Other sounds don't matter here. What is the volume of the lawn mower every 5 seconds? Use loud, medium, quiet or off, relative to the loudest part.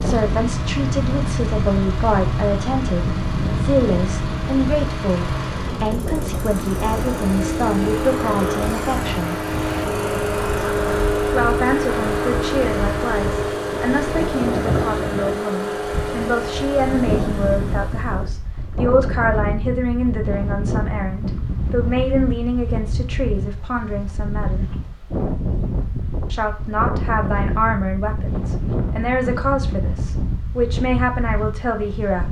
medium, loud, loud, medium, off, off, off.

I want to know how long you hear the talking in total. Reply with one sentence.
The talking can be heard for 29 seconds in total.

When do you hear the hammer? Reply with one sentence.
You can't hear the hammer here.